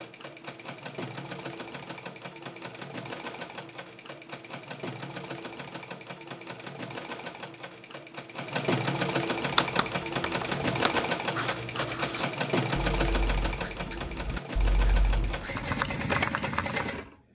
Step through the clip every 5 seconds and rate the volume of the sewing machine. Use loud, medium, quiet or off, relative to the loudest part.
medium, loud, loud, loud.